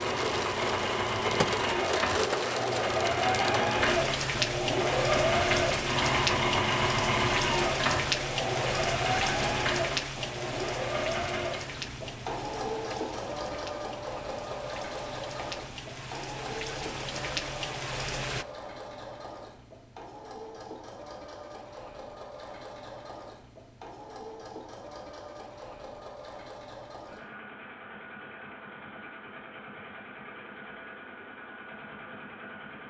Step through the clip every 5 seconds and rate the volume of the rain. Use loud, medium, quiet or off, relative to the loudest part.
loud, loud, medium, medium, off, off, off.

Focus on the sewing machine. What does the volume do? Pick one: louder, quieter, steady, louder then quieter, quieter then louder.
quieter.